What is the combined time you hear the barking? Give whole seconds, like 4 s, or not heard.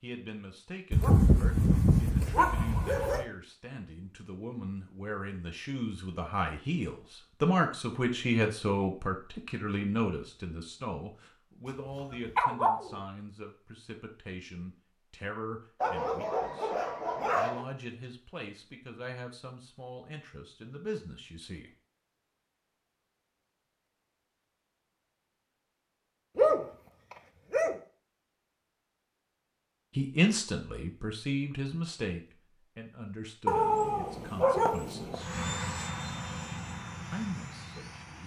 9 s.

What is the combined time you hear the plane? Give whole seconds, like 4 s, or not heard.
3 s.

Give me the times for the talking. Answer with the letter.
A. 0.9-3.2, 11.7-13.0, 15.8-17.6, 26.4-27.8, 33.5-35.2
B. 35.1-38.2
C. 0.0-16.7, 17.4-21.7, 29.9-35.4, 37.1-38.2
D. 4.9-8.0
C.